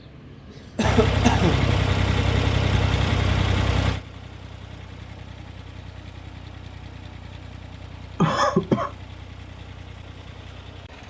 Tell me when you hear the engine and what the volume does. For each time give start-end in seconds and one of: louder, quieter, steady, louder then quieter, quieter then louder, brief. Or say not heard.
0.0-11.0 quieter.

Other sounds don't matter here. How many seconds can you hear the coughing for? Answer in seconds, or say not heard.
2 s.